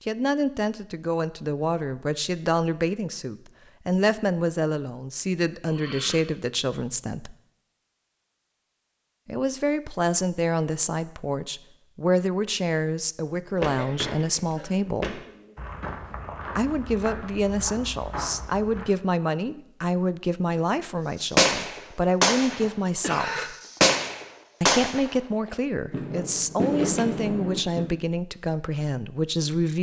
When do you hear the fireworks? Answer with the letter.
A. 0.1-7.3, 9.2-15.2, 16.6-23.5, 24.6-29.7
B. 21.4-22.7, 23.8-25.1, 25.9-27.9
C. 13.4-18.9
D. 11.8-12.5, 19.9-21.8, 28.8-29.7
B.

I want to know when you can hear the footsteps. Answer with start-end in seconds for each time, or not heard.
13.4-18.9.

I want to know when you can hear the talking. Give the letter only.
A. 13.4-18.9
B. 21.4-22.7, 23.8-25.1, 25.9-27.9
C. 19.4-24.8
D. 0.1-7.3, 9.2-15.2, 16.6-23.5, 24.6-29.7
D.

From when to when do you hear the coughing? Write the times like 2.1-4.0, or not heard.
5.6-6.2, 13.6-15.6, 22.5-23.5.